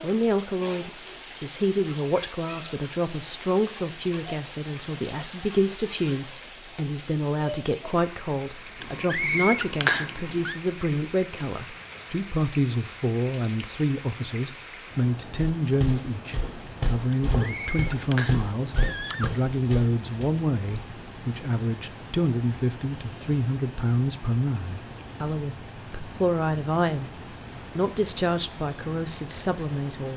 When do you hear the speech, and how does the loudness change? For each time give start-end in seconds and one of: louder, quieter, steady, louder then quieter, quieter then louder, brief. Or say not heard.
0.0-30.1 steady.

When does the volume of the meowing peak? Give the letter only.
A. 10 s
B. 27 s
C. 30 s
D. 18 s
A.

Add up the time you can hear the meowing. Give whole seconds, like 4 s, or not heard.
4 s.